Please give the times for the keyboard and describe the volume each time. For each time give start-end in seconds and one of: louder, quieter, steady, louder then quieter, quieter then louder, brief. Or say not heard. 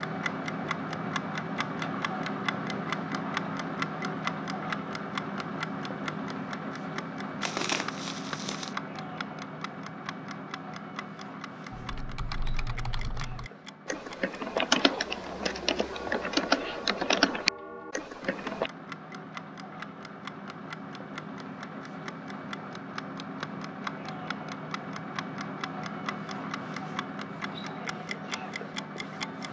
11.7-18.7 louder.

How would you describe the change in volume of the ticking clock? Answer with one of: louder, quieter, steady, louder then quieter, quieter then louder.
quieter then louder.